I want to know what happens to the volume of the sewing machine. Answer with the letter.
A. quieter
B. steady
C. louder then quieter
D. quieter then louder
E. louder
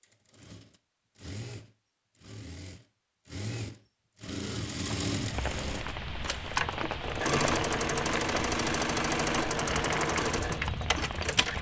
E.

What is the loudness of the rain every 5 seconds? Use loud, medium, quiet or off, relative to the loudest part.
off, loud, loud.